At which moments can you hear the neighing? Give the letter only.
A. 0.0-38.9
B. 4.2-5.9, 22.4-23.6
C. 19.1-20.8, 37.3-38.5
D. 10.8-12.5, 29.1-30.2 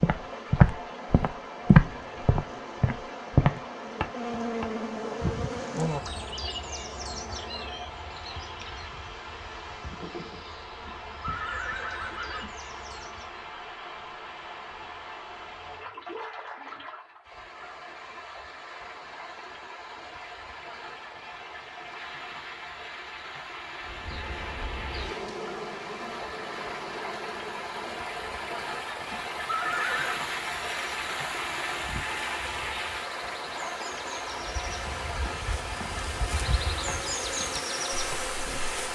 D.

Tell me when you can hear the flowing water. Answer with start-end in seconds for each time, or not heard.
0.0-38.9.